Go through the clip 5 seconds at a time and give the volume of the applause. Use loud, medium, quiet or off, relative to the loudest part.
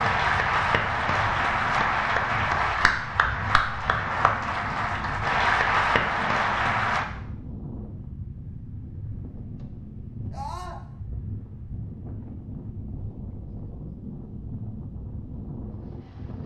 loud, loud, off, off.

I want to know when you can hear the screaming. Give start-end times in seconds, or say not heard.
10.3-10.8.